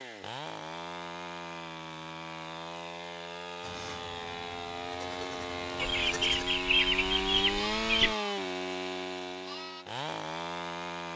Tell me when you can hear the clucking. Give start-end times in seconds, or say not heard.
5.8-8.2.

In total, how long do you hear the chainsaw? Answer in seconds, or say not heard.
11 s.